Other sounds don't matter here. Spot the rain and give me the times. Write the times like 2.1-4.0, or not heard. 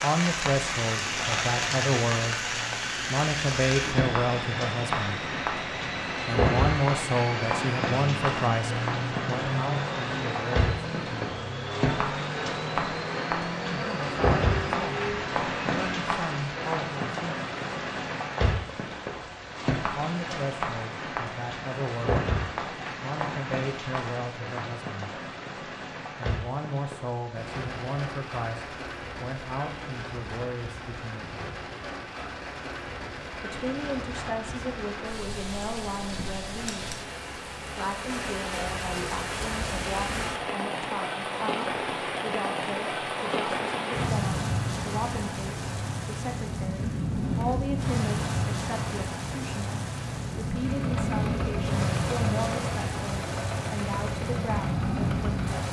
0.0-55.6.